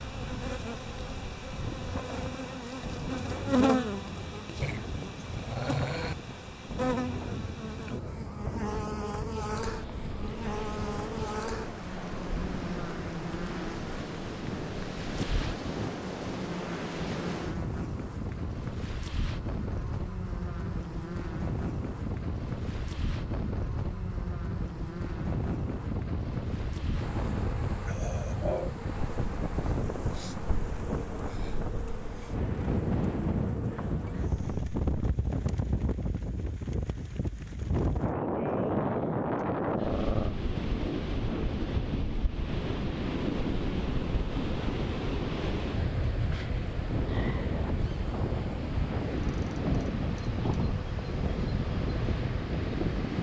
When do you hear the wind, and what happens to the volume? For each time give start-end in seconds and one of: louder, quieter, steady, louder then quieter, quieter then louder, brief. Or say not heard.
0.0-53.1 louder.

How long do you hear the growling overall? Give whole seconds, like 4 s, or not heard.
4 s.